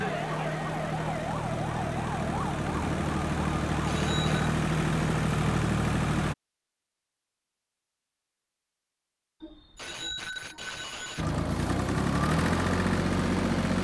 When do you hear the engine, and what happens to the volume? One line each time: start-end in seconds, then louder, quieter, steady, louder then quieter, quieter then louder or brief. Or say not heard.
0.0-6.3 louder
11.2-13.7 brief.